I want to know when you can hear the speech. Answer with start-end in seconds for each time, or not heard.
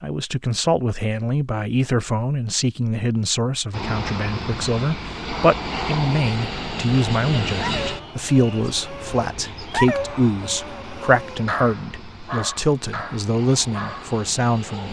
0.0-14.8.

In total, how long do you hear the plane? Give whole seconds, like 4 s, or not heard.
11 s.